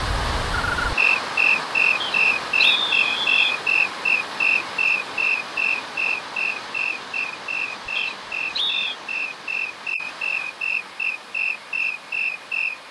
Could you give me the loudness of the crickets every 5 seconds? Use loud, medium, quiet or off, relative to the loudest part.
loud, medium, medium.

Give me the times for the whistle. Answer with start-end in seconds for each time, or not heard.
2.0-3.4, 8.0-8.9.